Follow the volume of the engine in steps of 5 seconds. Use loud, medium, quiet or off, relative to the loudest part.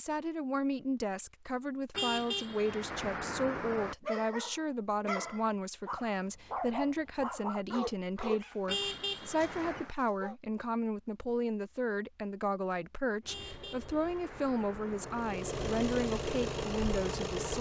off, off, quiet, loud.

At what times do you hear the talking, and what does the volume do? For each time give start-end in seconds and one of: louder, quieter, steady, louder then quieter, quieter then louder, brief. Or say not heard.
0.0-17.5 steady.